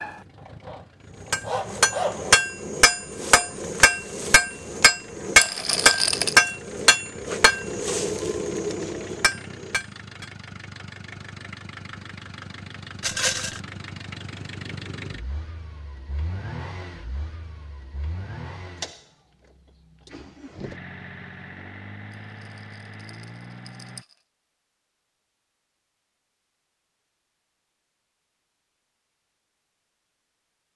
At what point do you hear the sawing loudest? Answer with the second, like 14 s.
2 s.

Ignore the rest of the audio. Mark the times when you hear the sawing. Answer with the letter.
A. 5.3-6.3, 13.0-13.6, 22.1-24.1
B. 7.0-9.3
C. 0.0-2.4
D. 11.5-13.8
C.